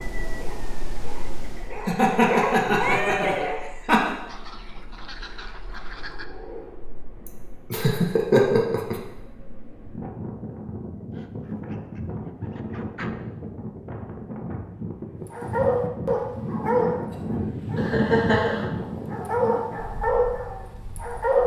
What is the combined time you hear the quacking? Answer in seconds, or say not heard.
4 s.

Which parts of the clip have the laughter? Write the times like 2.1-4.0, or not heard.
1.9-4.1, 7.2-9.0, 17.8-18.6.